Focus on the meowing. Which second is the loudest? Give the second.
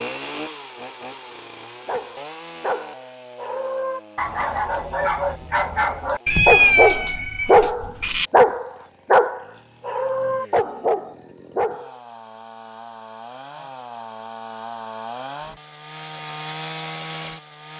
7 s.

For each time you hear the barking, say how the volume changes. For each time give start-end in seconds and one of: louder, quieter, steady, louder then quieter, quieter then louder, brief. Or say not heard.
1.9-11.9 louder then quieter.